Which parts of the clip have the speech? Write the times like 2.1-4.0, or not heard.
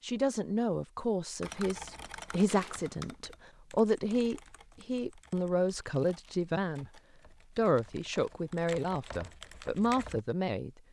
0.0-6.9, 7.5-10.7.